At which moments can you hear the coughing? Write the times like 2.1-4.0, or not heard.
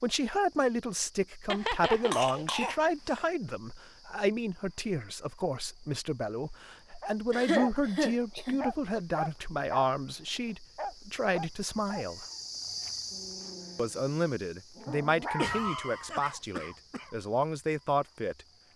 1.4-3.2, 7.3-8.6, 15.3-17.1.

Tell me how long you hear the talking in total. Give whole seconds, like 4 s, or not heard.
17 s.